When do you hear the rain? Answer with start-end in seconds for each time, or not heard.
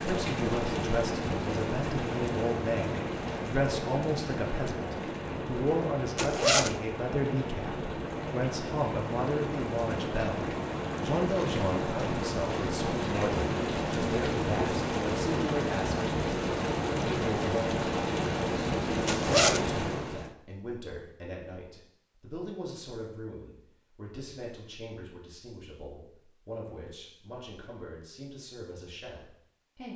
0.0-20.4.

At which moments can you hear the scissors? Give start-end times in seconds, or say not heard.
not heard.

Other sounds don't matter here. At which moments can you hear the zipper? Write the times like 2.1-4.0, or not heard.
6.2-6.8, 19.1-19.7.